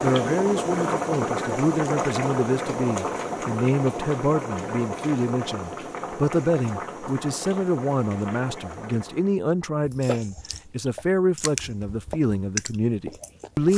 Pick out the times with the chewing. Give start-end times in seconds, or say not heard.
9.8-13.7.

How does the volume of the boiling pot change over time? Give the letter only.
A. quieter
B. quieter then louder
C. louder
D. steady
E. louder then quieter
A.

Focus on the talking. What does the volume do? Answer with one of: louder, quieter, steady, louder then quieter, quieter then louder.
steady.